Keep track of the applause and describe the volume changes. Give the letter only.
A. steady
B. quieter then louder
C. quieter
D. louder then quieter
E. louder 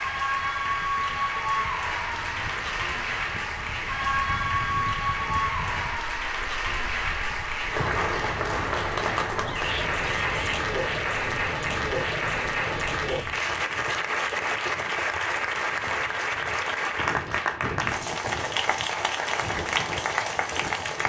A.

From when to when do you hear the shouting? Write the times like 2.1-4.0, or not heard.
9.4-10.6.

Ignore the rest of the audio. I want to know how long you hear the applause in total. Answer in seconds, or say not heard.
21 s.